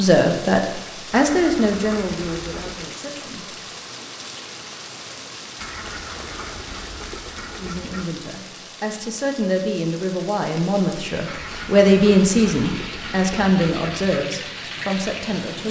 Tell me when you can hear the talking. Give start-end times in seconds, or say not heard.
0.0-3.5, 7.5-15.6.